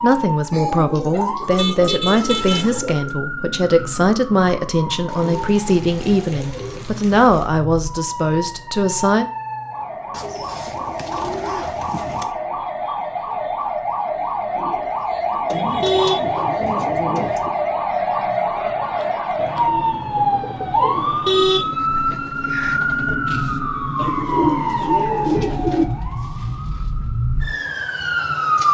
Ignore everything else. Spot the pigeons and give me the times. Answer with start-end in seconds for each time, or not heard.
0.5-3.1, 5.0-7.5, 10.1-12.3, 15.5-17.5, 19.4-21.4, 23.9-25.9.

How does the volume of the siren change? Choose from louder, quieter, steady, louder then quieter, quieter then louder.
louder.